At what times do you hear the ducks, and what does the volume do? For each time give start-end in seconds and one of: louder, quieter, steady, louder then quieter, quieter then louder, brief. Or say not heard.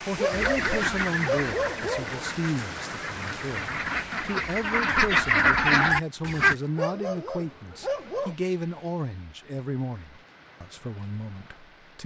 0.3-6.5 quieter then louder.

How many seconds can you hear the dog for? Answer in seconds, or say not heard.
4 s.